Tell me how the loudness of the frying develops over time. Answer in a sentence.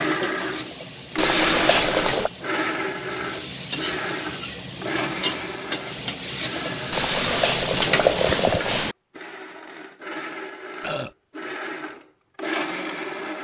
The loudness of the frying goes up.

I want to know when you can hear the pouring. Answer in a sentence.
The pouring can be heard from 1.1 to 2.3 s and from 6.9 to 8.9 s.